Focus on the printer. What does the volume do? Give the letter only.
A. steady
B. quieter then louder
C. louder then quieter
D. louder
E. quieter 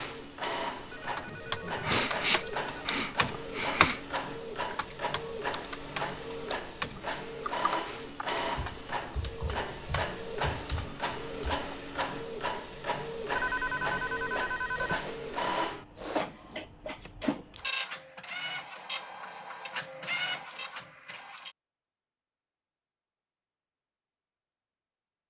A.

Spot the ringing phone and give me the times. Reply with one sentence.
You can hear the ringing phone from 0.9 to 2.9 s and from 13.3 to 15.1 s.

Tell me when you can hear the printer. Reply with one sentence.
You can hear the printer from 0.0 to 21.6 s.